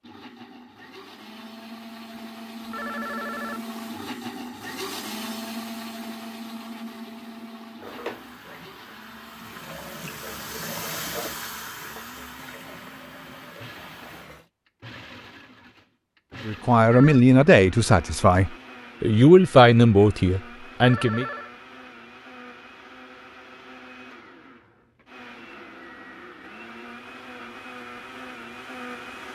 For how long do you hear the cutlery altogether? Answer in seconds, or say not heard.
not heard.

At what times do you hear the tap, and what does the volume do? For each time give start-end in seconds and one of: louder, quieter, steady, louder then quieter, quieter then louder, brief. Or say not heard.
7.8-14.5 louder then quieter.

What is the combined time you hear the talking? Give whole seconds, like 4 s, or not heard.
5 s.